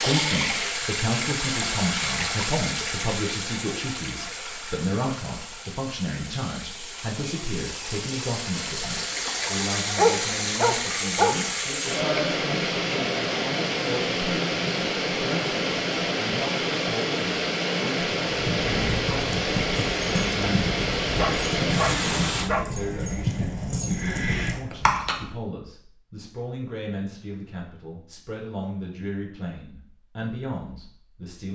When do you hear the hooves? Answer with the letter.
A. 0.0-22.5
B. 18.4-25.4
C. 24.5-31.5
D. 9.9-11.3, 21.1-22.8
B.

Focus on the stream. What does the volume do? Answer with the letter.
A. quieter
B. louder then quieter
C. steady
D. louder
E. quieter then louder
E.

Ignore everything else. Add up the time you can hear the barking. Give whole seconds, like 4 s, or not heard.
3 s.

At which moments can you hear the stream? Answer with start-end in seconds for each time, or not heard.
0.0-22.5.